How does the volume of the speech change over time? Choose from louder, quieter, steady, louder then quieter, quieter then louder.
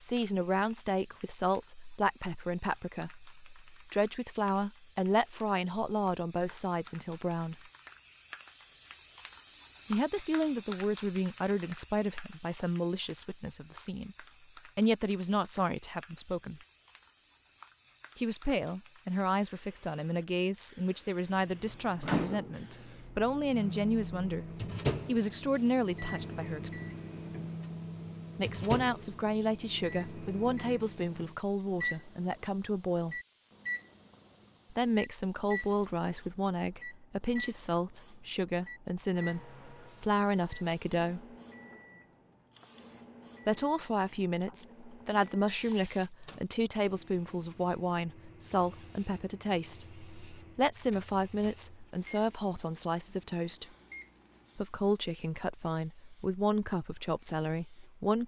steady.